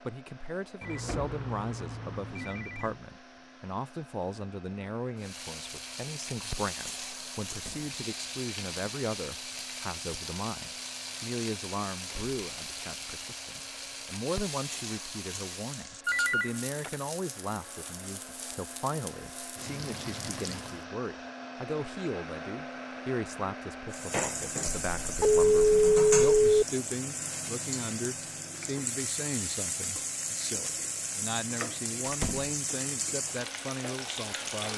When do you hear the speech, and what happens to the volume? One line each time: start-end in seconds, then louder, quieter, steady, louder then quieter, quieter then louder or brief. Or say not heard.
0.1-34.7 steady.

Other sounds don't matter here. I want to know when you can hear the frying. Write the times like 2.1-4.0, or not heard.
5.2-20.9, 23.9-34.7.